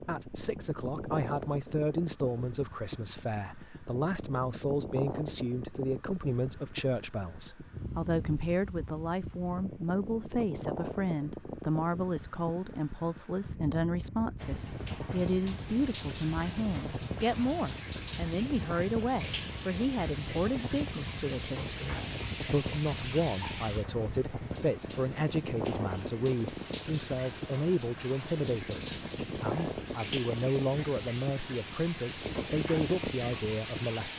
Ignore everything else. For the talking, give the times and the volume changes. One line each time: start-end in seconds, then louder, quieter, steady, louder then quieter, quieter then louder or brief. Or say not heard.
0.0-34.1 steady.